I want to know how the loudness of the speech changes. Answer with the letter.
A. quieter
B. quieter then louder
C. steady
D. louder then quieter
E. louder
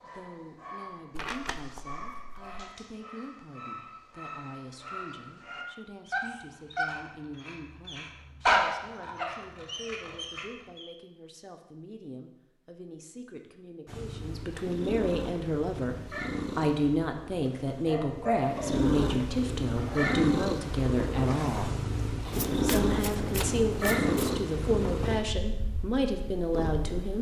E.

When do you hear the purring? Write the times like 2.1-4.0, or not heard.
13.8-27.1.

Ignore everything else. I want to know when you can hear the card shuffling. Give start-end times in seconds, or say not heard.
1.1-2.7, 22.3-24.4.